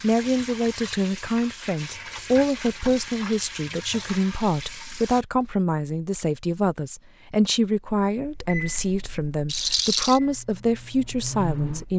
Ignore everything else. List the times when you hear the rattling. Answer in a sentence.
You can hear the rattling from 9.4 to 10.2 s.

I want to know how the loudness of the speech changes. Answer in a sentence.
The volume of the speech stays about the same.